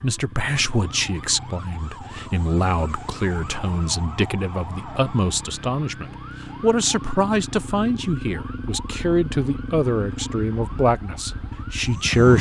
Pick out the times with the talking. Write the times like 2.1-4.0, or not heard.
0.0-12.3.